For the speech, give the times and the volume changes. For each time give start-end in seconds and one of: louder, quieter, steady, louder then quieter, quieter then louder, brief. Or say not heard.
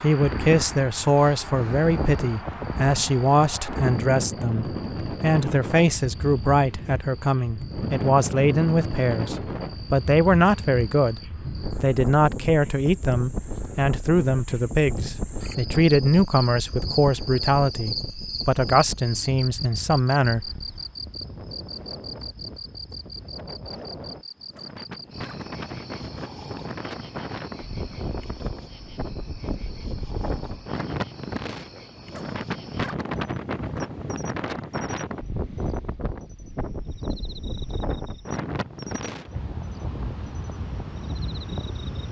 0.0-20.5 steady.